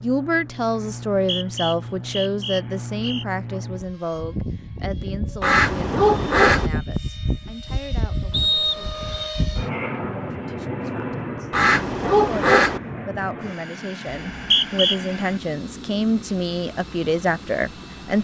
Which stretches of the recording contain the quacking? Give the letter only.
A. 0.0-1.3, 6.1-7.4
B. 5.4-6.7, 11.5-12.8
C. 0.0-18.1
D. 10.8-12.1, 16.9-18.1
B.